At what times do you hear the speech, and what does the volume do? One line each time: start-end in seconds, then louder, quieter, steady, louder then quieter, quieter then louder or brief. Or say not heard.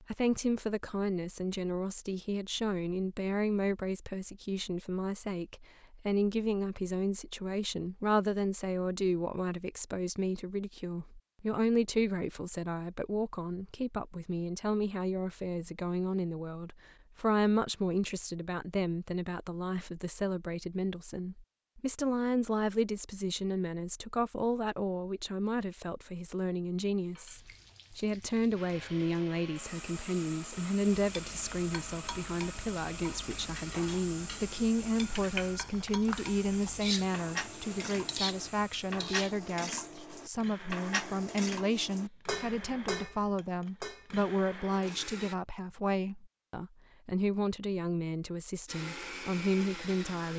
0.0-50.3 steady.